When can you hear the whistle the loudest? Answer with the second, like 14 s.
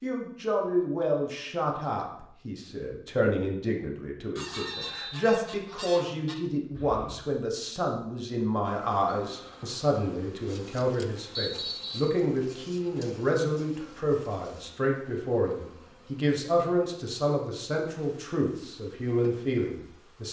12 s.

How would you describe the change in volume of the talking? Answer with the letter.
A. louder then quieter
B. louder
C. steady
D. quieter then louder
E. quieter
C.